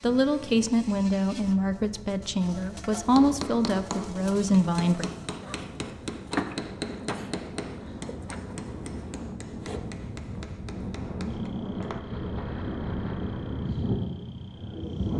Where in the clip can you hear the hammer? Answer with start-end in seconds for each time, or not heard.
3.0-12.0.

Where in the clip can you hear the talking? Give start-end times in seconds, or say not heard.
0.0-5.1.